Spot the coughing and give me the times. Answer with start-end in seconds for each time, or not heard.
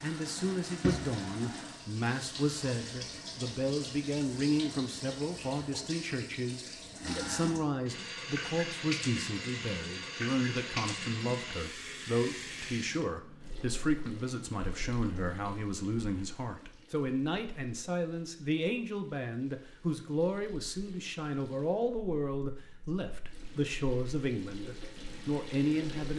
not heard.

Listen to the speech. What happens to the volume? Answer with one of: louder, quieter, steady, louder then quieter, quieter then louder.
steady.